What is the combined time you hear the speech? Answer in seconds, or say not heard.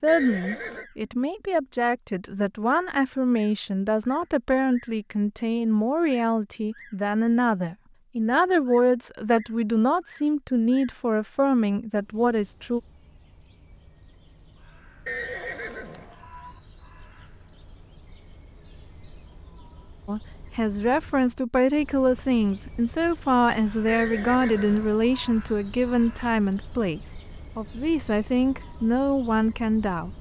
23 s.